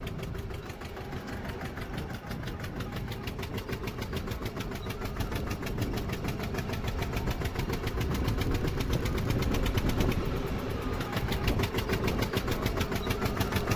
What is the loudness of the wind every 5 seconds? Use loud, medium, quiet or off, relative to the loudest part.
medium, loud, loud.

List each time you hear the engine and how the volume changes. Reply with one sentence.
The engine can be heard from 0.0 to 13.7 s, getting louder.